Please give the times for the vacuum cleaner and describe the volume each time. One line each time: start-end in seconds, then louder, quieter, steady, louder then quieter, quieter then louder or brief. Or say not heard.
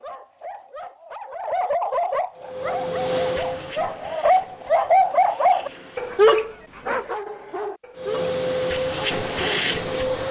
2.3-6.3 quieter
8.0-10.2 brief.